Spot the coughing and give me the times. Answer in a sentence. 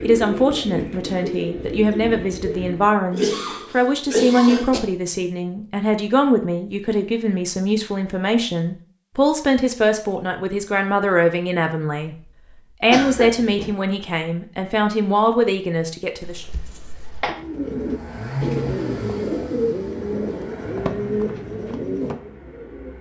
The coughing can be heard from 3.1 to 4.8 s, from 12.9 to 13.8 s and from 16.2 to 17.4 s.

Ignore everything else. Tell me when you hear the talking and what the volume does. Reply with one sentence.
You can hear the talking from 0.0 to 16.4 s, at a steady volume.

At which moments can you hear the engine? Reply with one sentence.
You can hear the engine from 16.9 to 22.9 s.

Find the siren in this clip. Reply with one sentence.
The siren can't be heard in this clip.